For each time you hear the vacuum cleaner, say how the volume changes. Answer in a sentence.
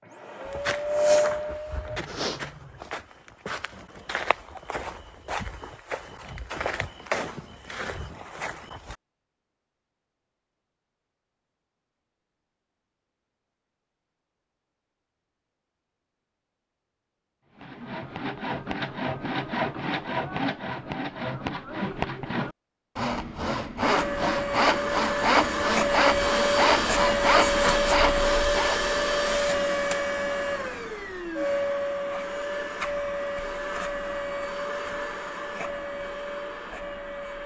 You can hear the vacuum cleaner briefly from 0.0 to 2.0 s; and from 23.8 to 37.4 s, getting quieter.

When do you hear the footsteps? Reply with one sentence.
The footsteps can be heard from 0.5 to 8.9 s.